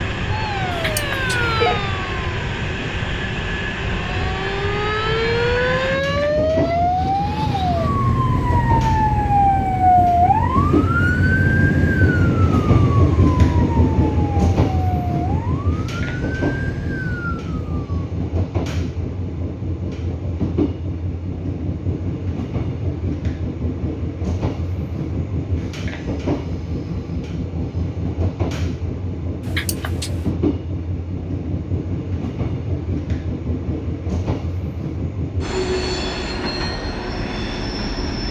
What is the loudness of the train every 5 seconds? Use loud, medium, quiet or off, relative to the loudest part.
medium, medium, loud, medium, medium, medium, medium, medium.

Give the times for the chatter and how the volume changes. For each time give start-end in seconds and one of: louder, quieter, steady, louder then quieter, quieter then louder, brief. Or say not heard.
not heard.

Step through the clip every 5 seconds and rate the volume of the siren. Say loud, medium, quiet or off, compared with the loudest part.
medium, loud, loud, medium, off, off, off, off.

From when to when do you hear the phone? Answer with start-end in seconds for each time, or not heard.
0.7-1.8, 29.4-30.3.